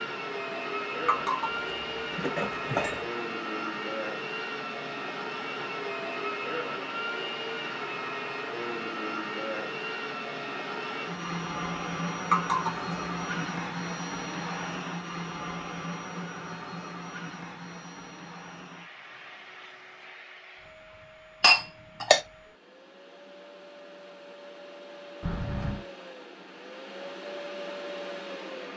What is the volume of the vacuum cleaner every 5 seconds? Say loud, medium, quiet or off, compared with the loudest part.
loud, loud, loud, medium, quiet, medium.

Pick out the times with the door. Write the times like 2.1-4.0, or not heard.
25.2-25.9.